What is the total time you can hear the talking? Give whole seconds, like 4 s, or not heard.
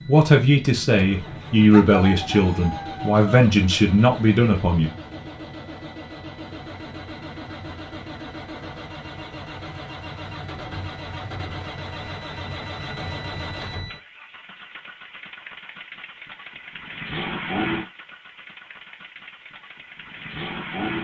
5 s.